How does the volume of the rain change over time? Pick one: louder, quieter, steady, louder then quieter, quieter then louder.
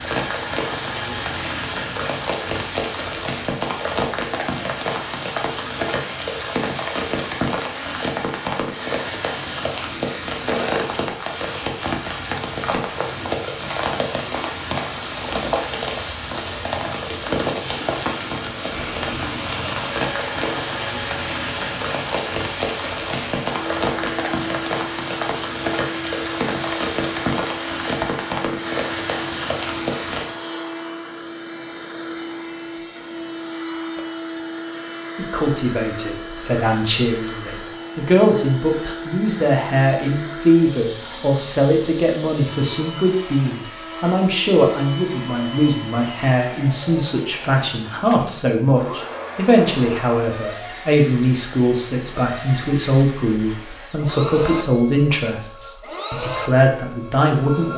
steady.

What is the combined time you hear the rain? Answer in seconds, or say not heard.
30 s.